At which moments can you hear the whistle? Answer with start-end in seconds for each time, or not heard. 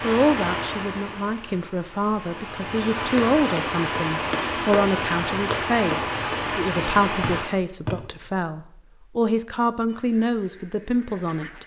7.2-7.9.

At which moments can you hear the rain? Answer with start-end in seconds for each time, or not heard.
0.0-7.5.